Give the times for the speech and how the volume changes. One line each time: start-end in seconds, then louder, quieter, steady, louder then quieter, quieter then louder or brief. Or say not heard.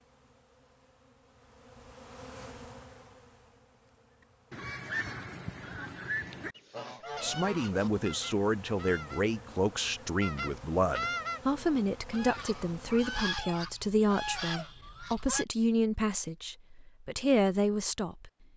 7.2-18.3 steady.